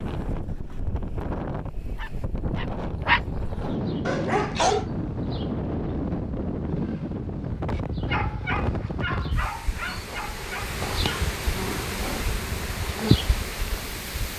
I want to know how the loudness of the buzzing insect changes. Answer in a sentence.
The loudness of the buzzing insect goes up.